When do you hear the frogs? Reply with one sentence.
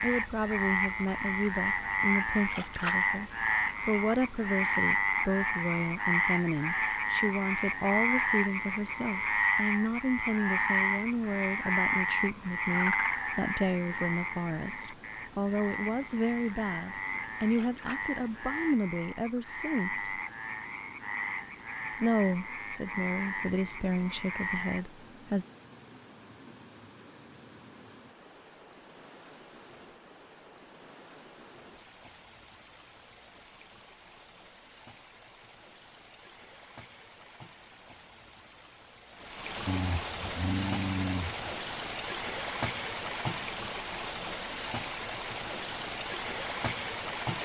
The frogs can be heard from 0.0 to 24.9 s.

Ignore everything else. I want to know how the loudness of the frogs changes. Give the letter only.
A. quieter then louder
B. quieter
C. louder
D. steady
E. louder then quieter
B.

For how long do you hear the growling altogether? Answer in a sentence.
The growling can be heard for 2 seconds in total.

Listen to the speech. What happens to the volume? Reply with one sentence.
The loudness of the speech stays about the same.